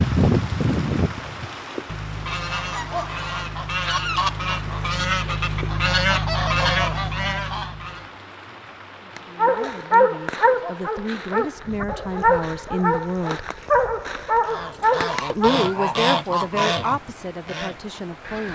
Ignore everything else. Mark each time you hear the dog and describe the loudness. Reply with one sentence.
You can hear the dog from 9.2 to 15.7 s, getting quieter then louder.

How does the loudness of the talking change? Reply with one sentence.
The loudness of the talking goes up, then down.